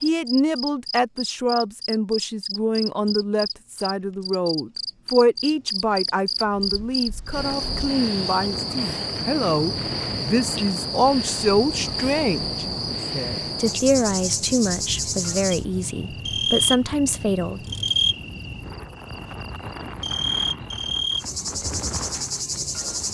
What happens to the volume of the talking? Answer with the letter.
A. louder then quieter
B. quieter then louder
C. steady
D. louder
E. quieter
C.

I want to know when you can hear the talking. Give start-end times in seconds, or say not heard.
0.0-17.6.